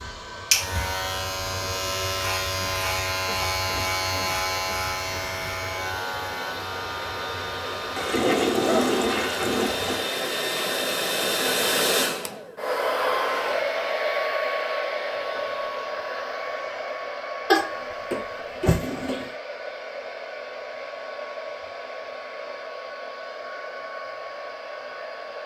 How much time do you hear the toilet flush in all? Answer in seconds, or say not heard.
4 s.